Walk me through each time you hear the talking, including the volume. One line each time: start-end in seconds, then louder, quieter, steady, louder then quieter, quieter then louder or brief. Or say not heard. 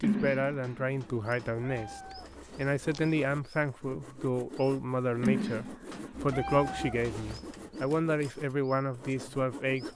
0.0-9.9 steady.